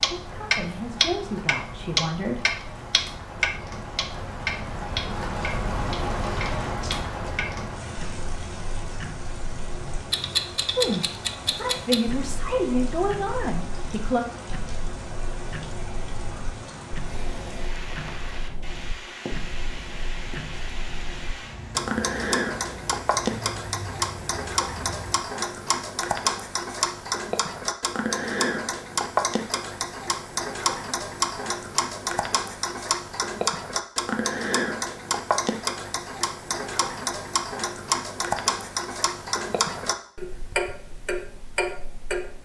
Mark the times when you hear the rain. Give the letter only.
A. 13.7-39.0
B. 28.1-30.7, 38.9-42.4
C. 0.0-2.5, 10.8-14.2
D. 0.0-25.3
D.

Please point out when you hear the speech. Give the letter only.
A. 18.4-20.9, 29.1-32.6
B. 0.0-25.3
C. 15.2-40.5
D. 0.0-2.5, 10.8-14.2
D.